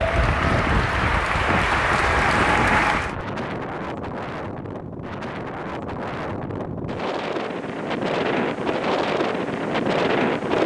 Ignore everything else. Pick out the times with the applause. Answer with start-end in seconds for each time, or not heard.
0.0-3.1.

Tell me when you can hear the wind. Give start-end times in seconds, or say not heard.
0.0-10.6.